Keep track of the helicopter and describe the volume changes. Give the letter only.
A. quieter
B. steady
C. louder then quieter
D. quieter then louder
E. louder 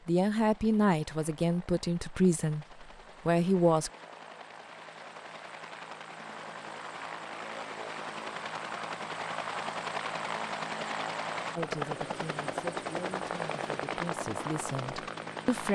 E.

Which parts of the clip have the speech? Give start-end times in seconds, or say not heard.
0.1-3.9, 11.6-15.6.